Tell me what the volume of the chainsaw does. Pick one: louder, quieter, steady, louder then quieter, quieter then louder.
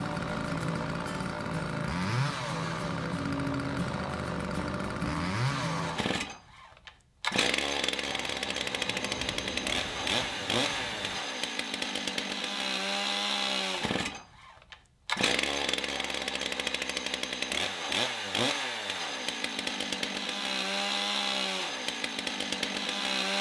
steady.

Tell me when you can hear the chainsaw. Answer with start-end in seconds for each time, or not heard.
0.0-23.3.